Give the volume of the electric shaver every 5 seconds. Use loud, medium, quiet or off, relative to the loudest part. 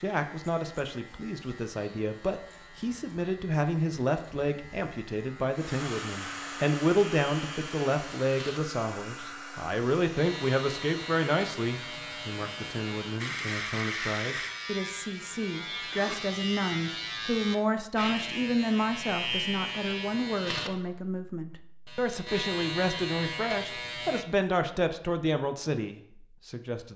quiet, medium, loud, loud, loud, off.